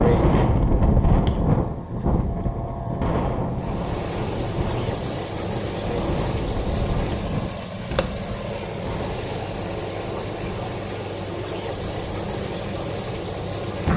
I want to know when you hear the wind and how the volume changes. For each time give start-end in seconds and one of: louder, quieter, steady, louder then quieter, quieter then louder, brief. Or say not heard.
0.0-13.7 quieter.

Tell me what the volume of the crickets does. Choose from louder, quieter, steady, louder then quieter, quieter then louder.
steady.